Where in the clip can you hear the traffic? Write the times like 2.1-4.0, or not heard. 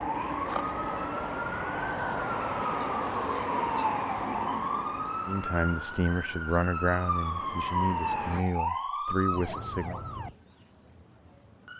0.0-8.4.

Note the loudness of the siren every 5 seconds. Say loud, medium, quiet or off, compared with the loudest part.
loud, loud, quiet.